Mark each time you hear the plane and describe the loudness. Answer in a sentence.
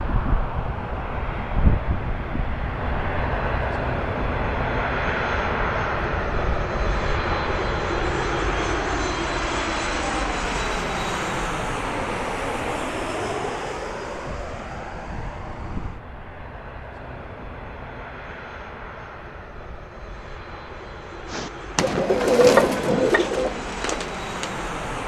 The plane can be heard from 0.0 to 25.0 s, getting quieter.